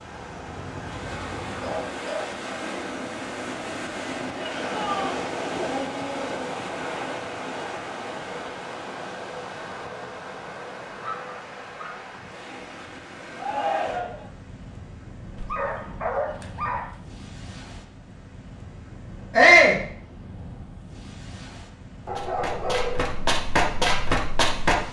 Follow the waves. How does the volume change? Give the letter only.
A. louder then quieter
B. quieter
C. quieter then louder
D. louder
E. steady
B.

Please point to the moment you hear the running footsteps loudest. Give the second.
24 s.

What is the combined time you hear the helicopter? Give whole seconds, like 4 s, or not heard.
2 s.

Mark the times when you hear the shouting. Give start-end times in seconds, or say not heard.
4.3-5.2, 13.3-14.2, 19.4-19.8.